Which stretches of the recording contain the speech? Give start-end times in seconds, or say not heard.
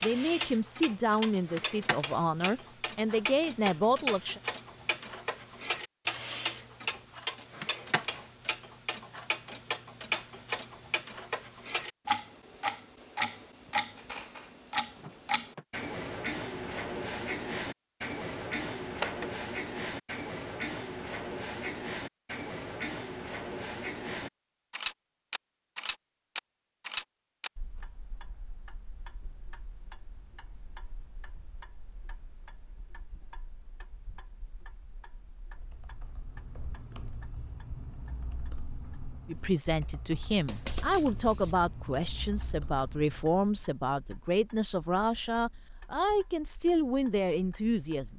0.0-4.4, 39.2-48.1.